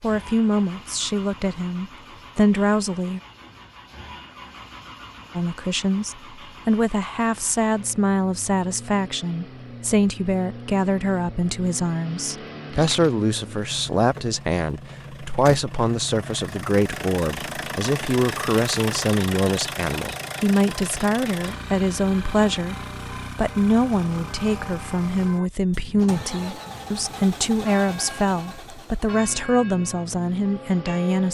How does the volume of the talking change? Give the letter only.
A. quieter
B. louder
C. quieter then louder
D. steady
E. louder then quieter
D.